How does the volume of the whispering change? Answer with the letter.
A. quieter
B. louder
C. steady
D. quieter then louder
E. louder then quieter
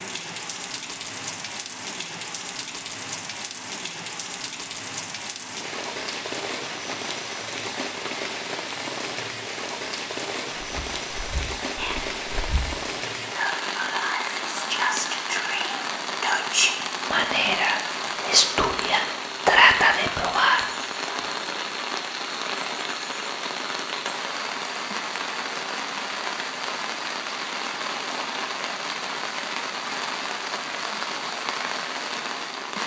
B.